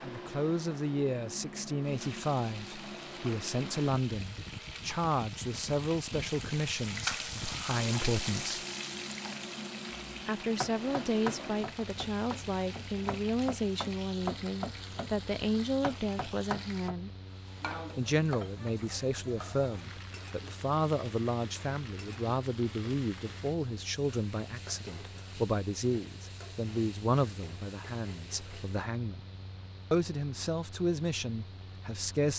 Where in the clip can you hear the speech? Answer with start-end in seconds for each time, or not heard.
0.0-8.7, 10.2-17.1, 17.9-29.2, 29.9-32.3.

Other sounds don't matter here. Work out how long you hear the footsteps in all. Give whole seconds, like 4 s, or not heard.
not heard.